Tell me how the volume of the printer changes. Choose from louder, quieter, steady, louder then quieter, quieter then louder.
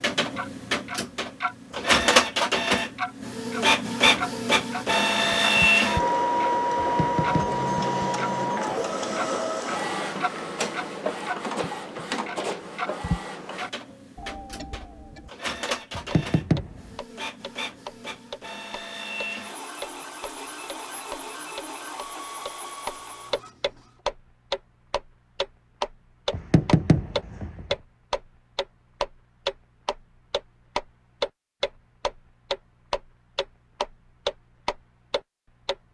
quieter.